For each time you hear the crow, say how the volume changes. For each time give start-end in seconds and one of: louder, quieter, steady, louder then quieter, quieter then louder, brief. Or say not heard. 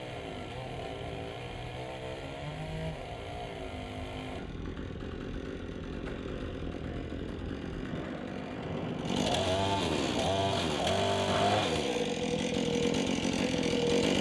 not heard.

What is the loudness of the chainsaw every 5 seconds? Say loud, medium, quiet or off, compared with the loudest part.
medium, medium, loud.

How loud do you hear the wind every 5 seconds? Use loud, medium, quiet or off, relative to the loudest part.
quiet, medium, loud.